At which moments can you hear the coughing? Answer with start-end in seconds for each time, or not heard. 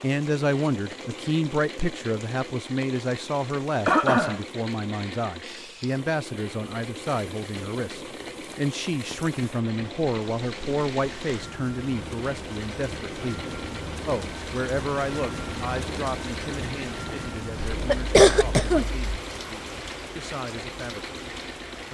3.9-4.4, 17.7-19.0.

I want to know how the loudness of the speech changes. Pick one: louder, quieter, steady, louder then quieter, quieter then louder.
quieter.